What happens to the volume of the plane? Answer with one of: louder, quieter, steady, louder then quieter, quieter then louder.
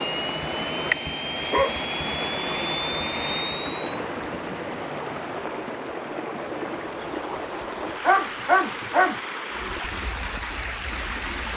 quieter.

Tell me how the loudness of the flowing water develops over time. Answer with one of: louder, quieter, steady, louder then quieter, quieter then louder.
steady.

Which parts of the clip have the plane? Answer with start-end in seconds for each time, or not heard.
0.0-5.5.